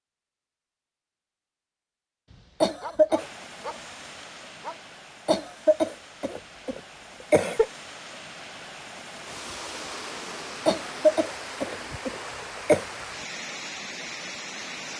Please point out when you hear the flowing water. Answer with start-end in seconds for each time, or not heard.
3.1-14.9.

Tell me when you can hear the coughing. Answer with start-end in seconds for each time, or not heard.
2.6-3.2, 5.2-7.7, 10.7-12.8.